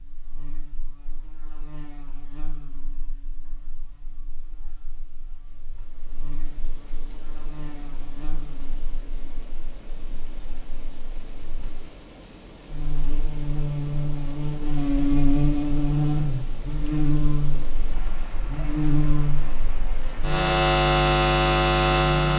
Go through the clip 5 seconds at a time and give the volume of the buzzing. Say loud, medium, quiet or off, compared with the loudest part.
quiet, quiet, quiet, medium, loud.